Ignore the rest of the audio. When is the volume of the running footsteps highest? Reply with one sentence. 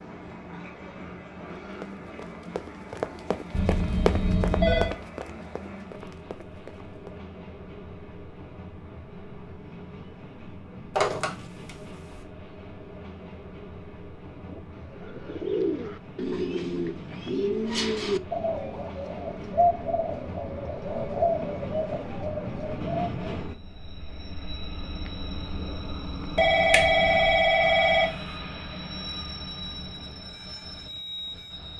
The volume of the running footsteps peaks at 4 seconds.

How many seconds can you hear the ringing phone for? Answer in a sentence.
You can hear the ringing phone for 4 seconds altogether.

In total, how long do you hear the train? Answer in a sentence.
You can hear the train for 32 seconds altogether.